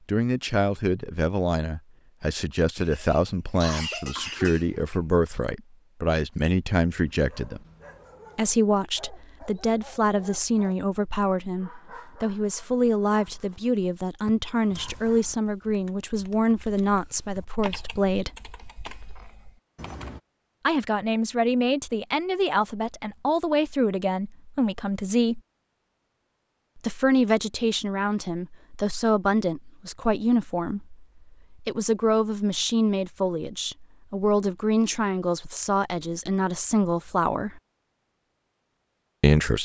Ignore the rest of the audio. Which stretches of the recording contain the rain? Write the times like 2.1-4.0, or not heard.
not heard.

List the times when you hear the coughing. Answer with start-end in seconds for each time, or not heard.
2.8-5.0.